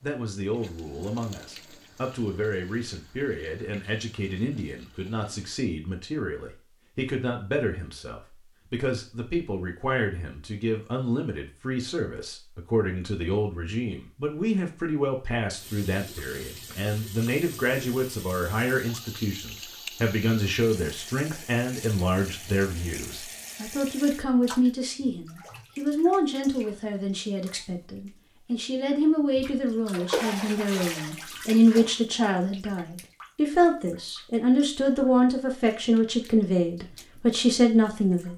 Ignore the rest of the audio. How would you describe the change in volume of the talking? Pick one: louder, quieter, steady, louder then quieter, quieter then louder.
louder.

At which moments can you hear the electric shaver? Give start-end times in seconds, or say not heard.
not heard.